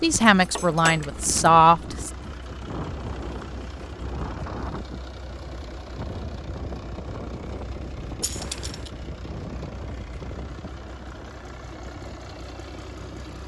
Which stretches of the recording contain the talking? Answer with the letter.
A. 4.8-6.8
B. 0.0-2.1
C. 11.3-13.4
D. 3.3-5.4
B.